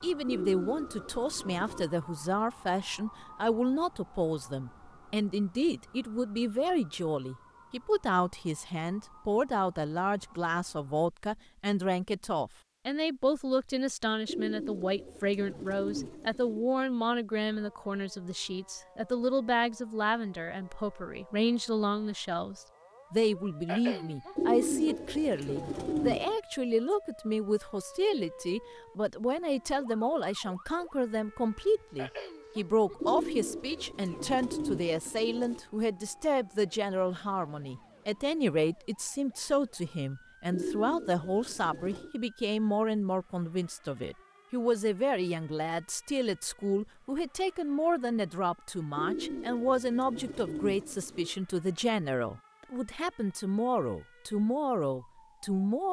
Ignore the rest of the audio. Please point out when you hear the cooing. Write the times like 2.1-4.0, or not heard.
0.2-1.9, 14.2-16.7, 24.4-26.4, 33.0-35.6, 40.5-42.1, 49.0-51.4.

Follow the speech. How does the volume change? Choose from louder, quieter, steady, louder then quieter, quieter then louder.
steady.